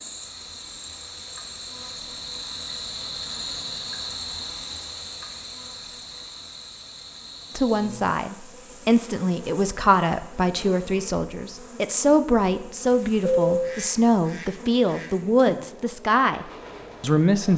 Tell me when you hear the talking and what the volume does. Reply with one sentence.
The talking can be heard from 7.5 to 17.5 s, at a steady volume.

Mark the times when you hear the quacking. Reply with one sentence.
The quacking can be heard from 13.4 to 15.1 s.